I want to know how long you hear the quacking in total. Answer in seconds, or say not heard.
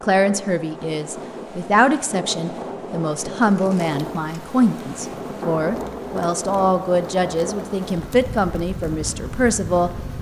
not heard.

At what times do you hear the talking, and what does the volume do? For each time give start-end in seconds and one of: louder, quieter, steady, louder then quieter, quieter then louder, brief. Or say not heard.
0.0-9.9 steady.